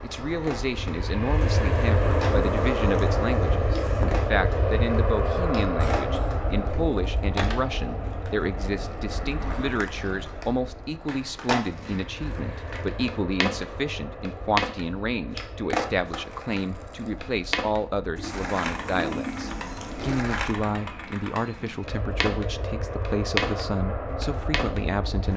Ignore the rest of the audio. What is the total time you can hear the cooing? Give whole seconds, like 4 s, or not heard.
5 s.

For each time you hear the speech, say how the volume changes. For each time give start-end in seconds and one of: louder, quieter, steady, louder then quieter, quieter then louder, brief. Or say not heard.
0.0-25.3 steady.